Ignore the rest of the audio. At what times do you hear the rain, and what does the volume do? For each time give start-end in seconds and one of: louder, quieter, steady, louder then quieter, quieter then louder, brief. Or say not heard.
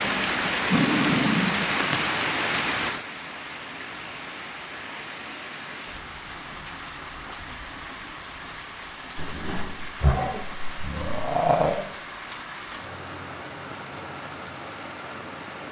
0.0-15.6 quieter.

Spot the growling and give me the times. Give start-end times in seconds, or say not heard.
0.0-2.0, 9.2-11.9.